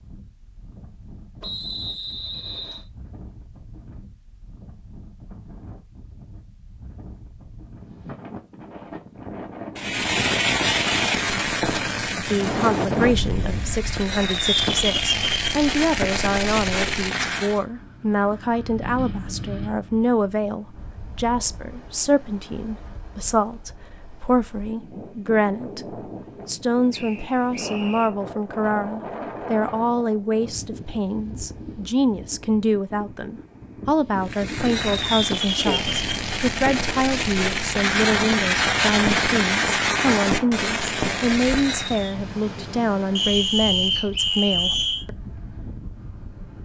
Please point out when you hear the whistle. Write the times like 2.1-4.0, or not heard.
1.4-2.9, 26.9-28.1, 43.1-45.0.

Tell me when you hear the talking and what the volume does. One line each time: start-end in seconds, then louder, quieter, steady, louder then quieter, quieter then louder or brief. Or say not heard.
12.2-45.1 steady.